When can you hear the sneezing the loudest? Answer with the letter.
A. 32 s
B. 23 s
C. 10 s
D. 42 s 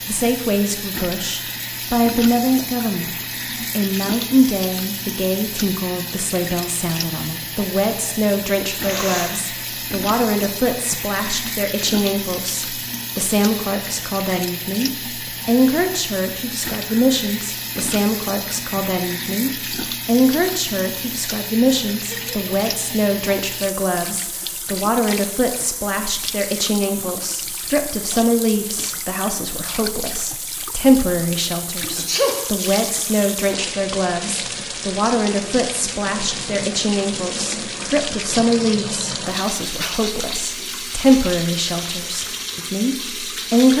A.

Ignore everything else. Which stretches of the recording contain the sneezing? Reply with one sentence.
You can hear the sneezing from 8.7 to 9.3 s, from 21.9 to 22.4 s and from 31.9 to 32.5 s.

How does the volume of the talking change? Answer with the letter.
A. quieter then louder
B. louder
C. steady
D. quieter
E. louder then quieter
C.